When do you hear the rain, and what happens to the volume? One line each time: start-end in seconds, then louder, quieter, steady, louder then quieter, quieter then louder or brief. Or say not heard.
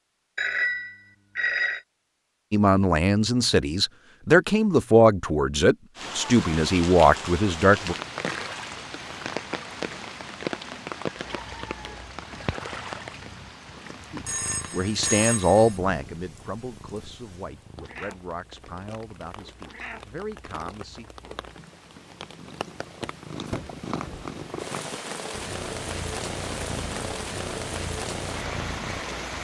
6.0-29.3 quieter then louder.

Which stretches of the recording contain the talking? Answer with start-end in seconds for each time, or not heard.
2.5-8.0, 14.1-21.1.